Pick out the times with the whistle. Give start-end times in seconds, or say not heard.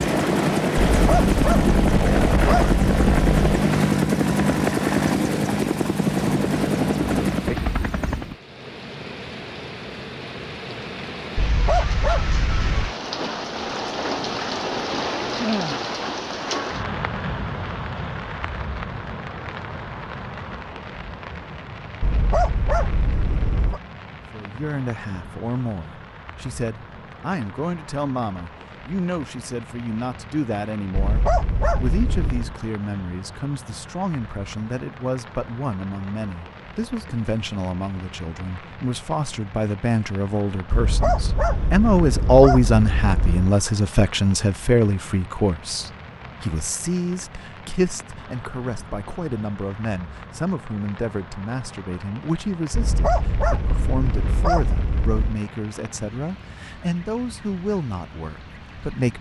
not heard.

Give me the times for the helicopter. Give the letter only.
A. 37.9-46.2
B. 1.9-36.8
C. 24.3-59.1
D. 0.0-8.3
D.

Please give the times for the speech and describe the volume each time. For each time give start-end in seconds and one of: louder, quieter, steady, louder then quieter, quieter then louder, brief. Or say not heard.
24.3-59.1 louder then quieter.